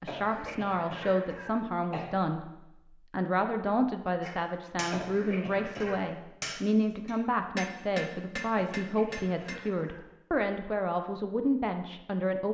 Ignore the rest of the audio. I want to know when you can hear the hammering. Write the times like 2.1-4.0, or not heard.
4.2-9.7.